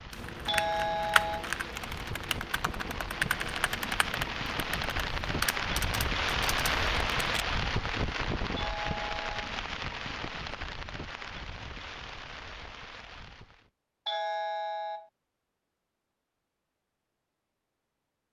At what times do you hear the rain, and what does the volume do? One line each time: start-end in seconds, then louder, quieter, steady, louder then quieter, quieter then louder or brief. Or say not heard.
0.0-13.7 louder then quieter.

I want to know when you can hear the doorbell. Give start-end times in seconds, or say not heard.
0.5-1.5, 8.6-9.4, 14.1-15.1.